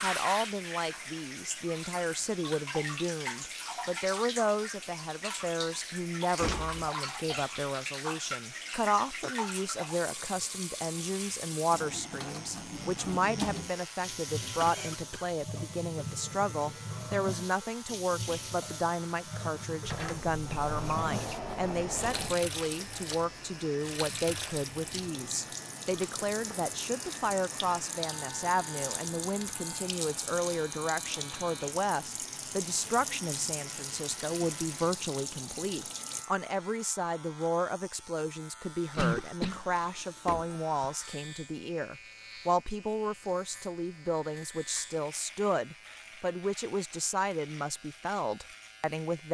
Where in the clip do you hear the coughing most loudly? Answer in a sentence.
The volume of the coughing peaks at 39 seconds.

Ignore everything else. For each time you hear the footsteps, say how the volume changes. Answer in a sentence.
You can't hear the footsteps here.